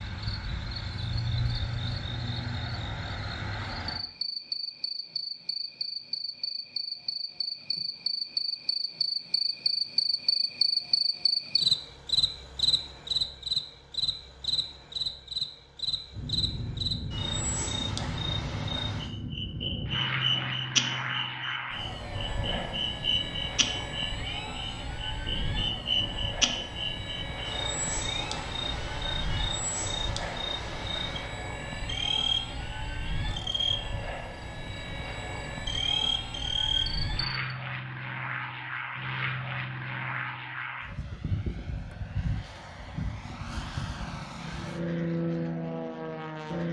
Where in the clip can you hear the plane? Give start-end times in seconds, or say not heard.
16.1-46.6.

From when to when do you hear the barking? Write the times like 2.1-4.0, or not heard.
not heard.